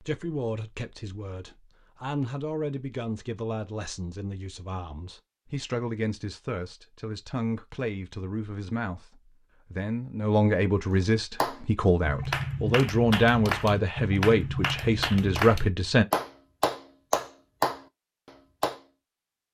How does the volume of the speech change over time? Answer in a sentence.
The loudness of the speech goes up.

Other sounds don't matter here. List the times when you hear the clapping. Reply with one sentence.
You can hear the clapping from 11.4 to 18.8 s.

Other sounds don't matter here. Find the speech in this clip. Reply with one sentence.
The speech can be heard from 0.0 to 16.1 s.